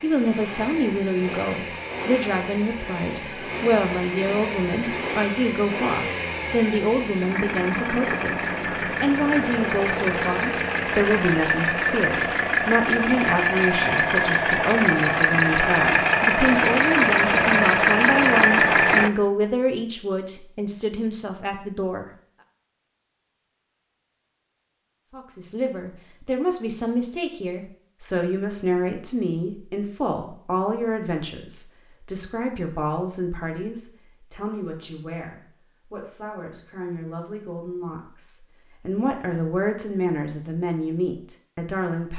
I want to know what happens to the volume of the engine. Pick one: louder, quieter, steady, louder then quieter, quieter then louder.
louder.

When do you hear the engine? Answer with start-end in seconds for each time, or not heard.
0.0-19.1.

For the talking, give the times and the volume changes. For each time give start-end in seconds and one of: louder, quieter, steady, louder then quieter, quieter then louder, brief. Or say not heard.
0.0-22.1 steady
25.1-42.1 quieter then louder.